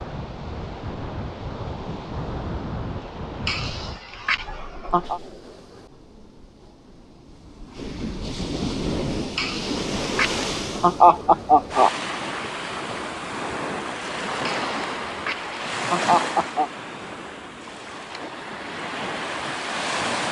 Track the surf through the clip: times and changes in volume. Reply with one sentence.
The surf can be heard from 0.0 to 20.2 s, getting quieter then louder.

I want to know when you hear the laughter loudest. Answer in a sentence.
The loudest moment of the laughter is at 11 seconds.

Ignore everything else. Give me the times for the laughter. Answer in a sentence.
You can hear the laughter from 3.5 to 5.2 s, from 9.3 to 11.9 s and from 14.4 to 16.7 s.